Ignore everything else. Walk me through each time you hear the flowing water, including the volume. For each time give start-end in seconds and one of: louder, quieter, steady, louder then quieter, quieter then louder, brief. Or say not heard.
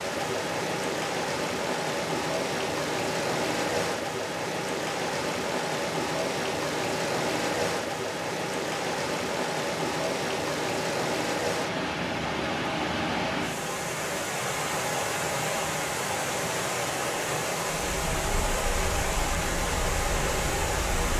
0.0-21.1 steady.